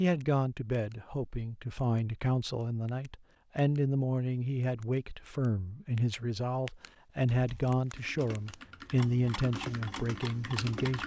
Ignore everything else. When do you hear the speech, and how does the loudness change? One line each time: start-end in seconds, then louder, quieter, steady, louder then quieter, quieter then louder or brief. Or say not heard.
0.0-11.0 steady.